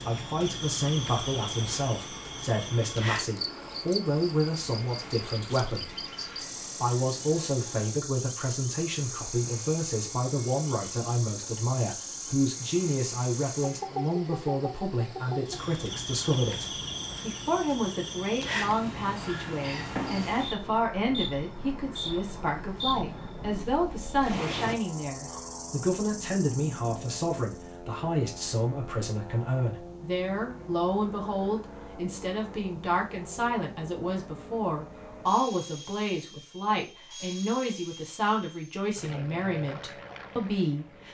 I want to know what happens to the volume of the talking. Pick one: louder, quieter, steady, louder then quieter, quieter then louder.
steady.